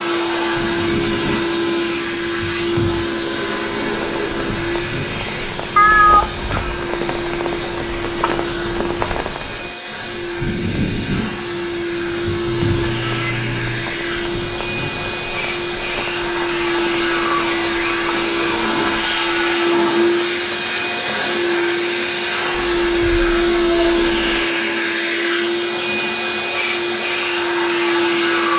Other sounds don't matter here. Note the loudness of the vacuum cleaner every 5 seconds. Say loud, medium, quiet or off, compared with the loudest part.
loud, medium, medium, loud, loud, loud.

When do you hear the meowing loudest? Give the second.
6 s.